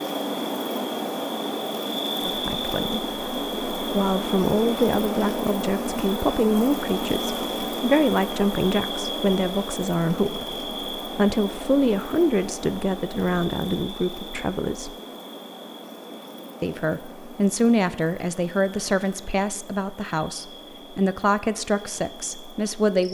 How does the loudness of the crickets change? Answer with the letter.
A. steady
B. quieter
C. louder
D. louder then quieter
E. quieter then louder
B.